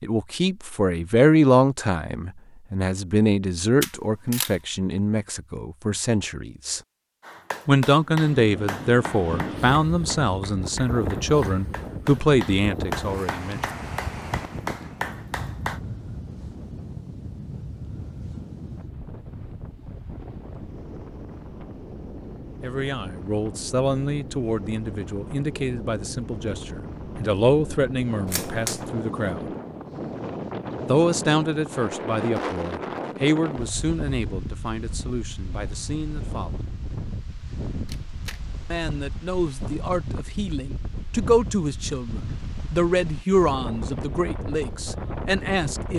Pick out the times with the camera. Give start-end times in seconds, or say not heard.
3.8-4.5, 28.2-28.9, 37.9-38.4.